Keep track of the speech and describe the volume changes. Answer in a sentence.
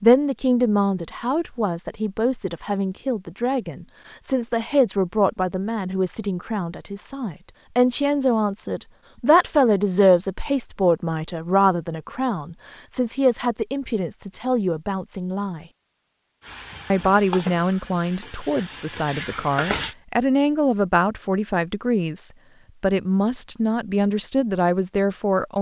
The loudness of the speech stays about the same.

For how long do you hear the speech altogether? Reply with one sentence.
The speech can be heard for 24 seconds in total.